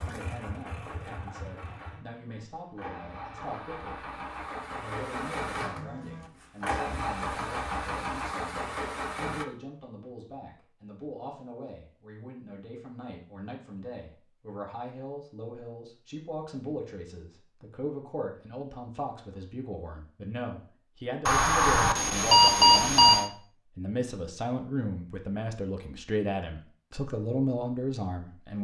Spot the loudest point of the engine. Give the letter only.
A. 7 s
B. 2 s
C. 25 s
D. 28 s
A.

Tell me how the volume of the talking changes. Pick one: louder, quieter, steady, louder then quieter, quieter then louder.
louder.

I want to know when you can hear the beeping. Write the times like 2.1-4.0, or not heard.
21.2-23.2.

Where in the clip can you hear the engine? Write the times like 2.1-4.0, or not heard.
0.0-9.4.